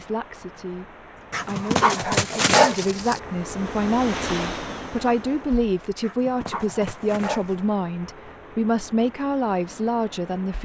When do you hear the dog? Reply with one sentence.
You can hear the dog from 1.3 to 3.2 s and from 6.0 to 7.7 s.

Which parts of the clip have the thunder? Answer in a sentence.
The thunder can't be heard in this clip.